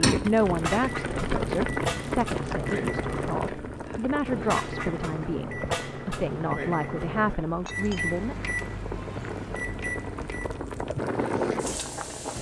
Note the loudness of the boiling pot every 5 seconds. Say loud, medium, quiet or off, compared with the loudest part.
loud, medium, loud.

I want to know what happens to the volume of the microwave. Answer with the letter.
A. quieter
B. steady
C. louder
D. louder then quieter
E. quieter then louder
B.